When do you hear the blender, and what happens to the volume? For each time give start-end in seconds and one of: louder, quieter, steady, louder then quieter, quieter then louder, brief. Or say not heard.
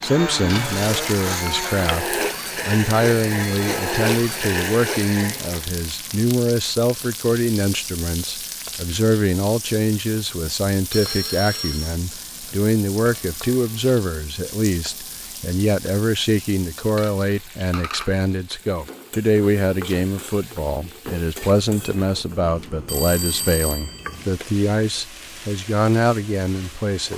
0.0-5.7 steady.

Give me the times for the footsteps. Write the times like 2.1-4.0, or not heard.
not heard.